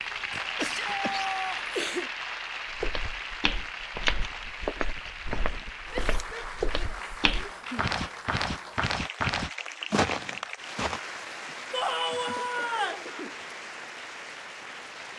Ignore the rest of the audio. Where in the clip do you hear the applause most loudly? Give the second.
1 s.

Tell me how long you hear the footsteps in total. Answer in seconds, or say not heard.
8 s.